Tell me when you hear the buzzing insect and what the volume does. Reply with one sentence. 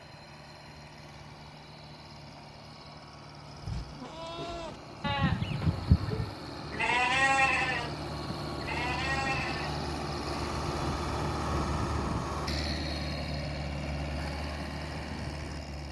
You can't hear the buzzing insect here.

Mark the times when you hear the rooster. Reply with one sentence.
The rooster can't be heard in this clip.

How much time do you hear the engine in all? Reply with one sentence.
You can hear the engine for 16 seconds altogether.